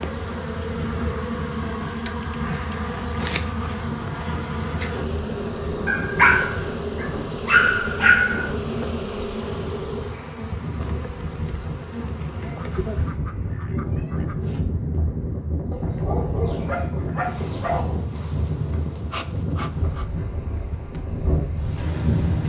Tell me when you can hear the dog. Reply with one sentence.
The dog can be heard from 5.8 to 8.4 s and from 15.7 to 18.0 s.